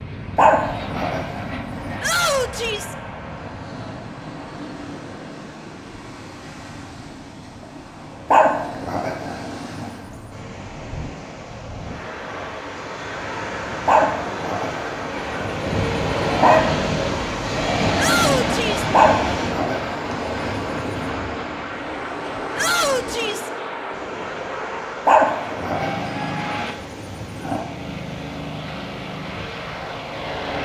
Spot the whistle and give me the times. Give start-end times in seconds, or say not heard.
not heard.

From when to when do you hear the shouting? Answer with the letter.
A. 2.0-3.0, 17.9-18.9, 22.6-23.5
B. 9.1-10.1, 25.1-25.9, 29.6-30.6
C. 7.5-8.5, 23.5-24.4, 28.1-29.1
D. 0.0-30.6
A.